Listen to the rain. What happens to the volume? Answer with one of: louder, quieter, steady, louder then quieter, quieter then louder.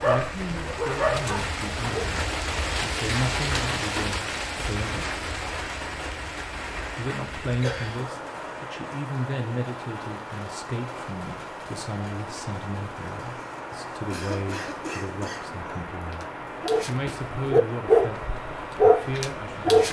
quieter.